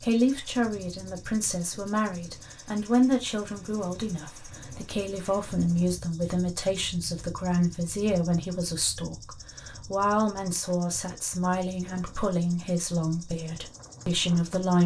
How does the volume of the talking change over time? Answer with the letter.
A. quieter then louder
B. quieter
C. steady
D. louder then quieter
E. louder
C.